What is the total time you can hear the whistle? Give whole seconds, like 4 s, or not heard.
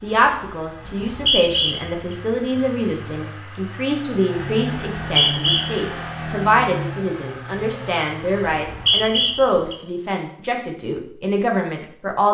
3 s.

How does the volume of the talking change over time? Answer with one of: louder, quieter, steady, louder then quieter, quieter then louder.
steady.